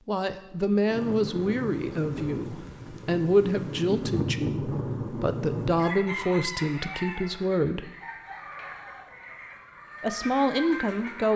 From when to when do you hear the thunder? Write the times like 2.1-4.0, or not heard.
0.9-5.8.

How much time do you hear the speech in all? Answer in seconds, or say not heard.
9 s.